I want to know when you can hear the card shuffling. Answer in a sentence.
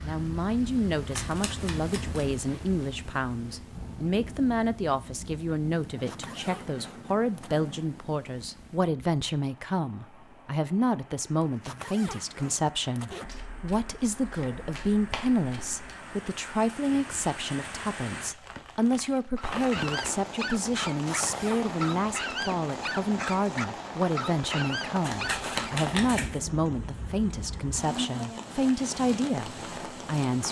The card shuffling can be heard from 1.1 to 2.2 s, from 13.2 to 15.9 s and from 25.0 to 26.4 s.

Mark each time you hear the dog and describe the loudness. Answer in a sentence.
You can hear the dog from 19.4 to 25.8 s, at a steady volume.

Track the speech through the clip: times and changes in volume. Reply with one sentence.
You can hear the speech from 0.0 to 30.4 s, at a steady volume.